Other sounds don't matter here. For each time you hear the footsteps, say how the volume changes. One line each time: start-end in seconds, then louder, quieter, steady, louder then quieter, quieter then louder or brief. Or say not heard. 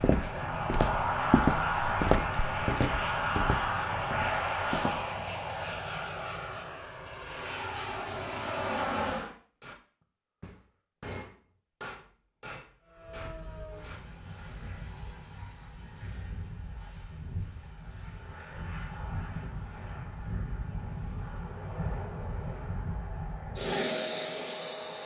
0.0-5.0 louder then quieter.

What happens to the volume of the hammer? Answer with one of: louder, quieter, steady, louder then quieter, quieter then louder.
louder then quieter.